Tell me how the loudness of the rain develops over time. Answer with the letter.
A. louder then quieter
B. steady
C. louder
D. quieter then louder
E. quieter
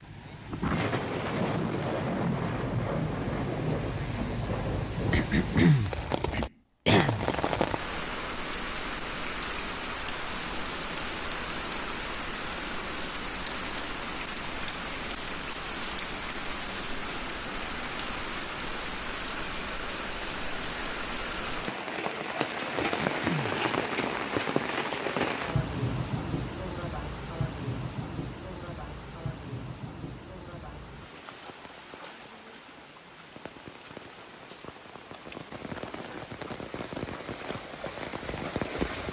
E.